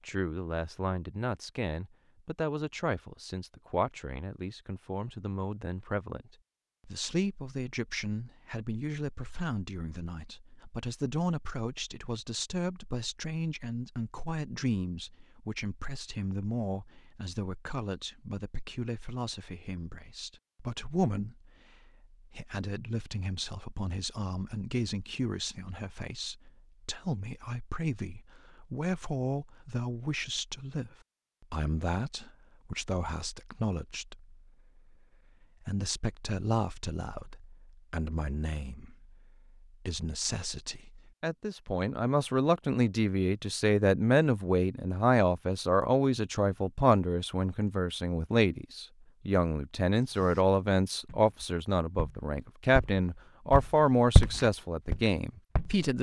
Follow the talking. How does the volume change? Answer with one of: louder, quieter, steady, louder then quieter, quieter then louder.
louder.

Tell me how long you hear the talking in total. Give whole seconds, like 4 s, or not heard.
56 s.